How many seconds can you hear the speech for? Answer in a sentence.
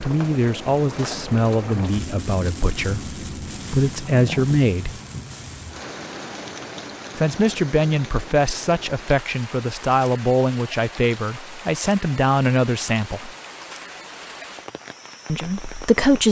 The speech can be heard for 12 seconds in total.